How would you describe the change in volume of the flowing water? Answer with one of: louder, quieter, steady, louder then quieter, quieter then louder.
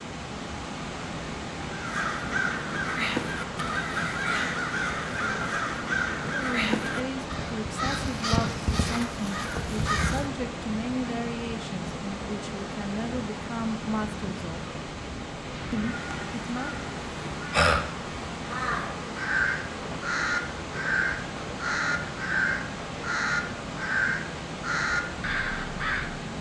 steady.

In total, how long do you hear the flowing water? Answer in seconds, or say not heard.
26 s.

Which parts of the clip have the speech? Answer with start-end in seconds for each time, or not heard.
6.2-14.7, 15.7-16.9.